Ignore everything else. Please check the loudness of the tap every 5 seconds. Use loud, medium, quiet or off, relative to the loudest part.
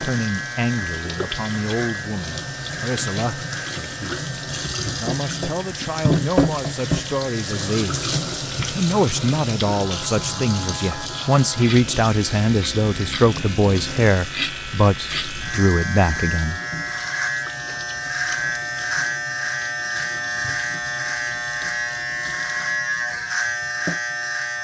medium, loud, medium, quiet, quiet.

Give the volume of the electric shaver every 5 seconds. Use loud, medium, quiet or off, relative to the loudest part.
medium, quiet, medium, loud, loud.